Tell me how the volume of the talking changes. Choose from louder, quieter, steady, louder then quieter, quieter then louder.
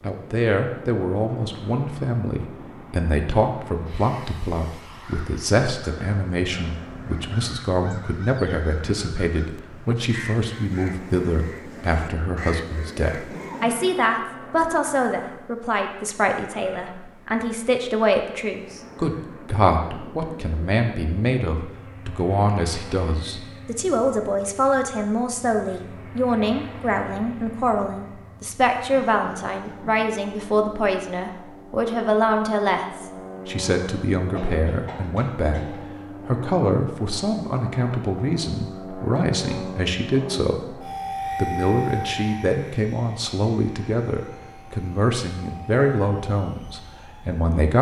steady.